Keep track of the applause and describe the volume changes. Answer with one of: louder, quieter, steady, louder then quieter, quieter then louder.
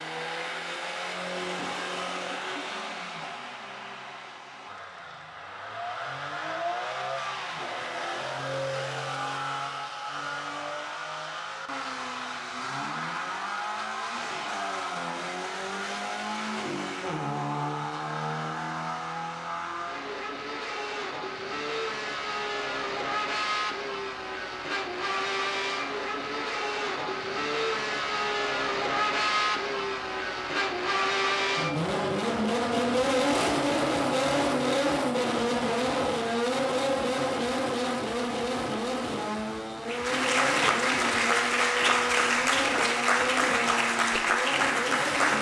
steady.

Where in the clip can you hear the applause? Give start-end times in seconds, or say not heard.
39.9-45.3.